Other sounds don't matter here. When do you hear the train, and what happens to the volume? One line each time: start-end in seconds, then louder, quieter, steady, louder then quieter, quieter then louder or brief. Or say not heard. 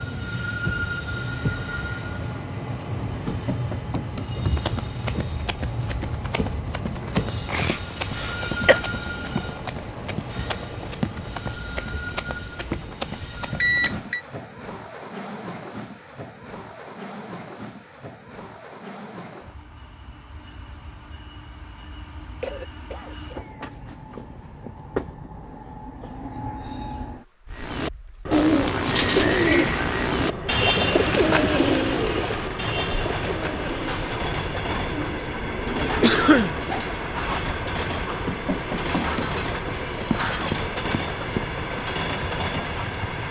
0.0-43.2 quieter then louder.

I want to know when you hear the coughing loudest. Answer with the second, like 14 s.
36 s.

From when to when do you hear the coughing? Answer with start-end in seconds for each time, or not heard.
7.0-8.8, 22.4-23.5, 36.0-36.5.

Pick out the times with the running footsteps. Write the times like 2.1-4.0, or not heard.
3.0-14.1, 38.0-42.0.